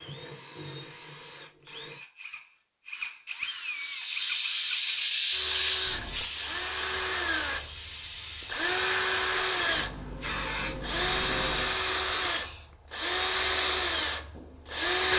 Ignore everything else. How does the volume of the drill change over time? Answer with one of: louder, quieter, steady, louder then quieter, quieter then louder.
louder.